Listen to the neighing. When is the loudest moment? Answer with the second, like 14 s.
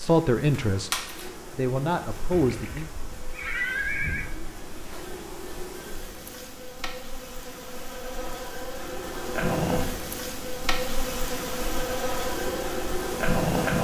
4 s.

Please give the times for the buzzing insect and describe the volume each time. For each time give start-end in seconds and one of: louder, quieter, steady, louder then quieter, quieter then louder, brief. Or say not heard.
0.0-13.7 quieter then louder.